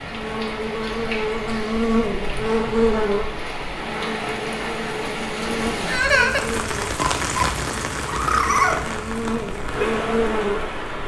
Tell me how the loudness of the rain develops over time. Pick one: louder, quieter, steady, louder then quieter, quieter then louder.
louder.